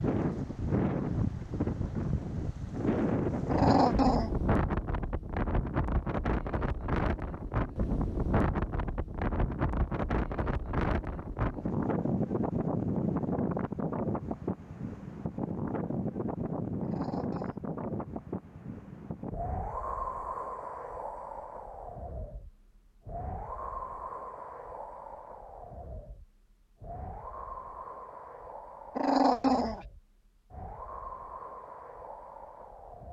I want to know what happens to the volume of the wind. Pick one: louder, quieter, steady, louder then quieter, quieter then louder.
quieter.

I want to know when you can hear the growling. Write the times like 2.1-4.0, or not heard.
3.5-4.3, 16.8-17.6, 28.9-29.9.